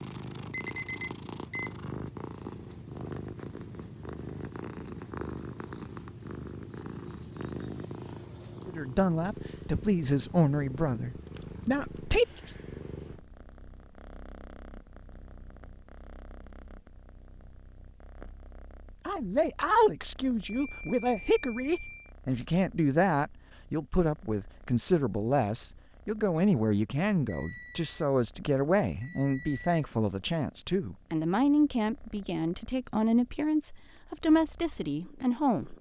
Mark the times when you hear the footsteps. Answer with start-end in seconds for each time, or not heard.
not heard.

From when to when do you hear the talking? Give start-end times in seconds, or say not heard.
8.7-12.6, 19.1-35.7.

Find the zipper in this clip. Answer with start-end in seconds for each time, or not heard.
not heard.